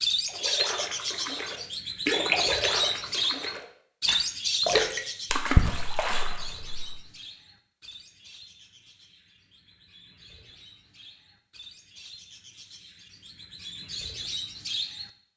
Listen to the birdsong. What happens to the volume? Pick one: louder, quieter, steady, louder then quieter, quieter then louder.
quieter then louder.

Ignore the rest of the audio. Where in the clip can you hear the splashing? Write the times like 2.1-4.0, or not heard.
0.2-7.0.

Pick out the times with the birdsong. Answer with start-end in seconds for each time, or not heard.
0.0-15.3.